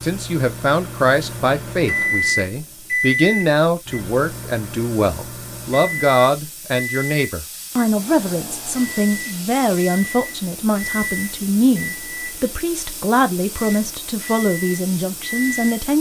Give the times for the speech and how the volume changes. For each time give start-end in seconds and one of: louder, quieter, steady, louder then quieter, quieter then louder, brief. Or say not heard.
0.0-15.9 steady.